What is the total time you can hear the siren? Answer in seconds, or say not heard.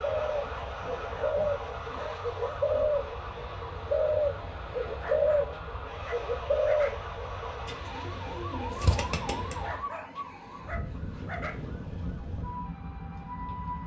14 s.